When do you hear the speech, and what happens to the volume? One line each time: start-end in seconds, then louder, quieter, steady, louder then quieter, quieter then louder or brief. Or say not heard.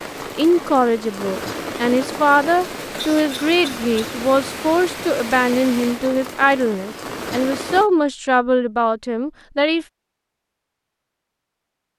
0.3-9.8 steady.